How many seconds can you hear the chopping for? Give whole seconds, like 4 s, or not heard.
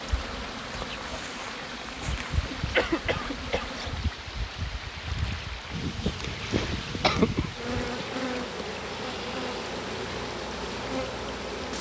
not heard.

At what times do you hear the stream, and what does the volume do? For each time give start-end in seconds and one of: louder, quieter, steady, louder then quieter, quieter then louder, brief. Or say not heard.
0.0-11.7 steady.